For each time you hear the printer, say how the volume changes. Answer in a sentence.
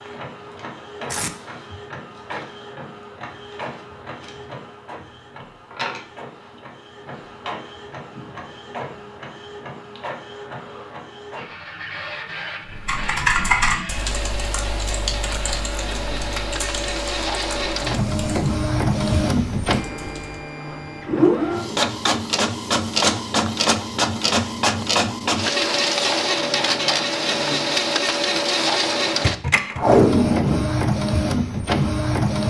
You can hear the printer from 0.0 to 32.4 s, getting louder.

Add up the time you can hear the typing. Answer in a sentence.
The typing can be heard for 8 seconds in total.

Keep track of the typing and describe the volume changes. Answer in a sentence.
The volume of the typing goes down.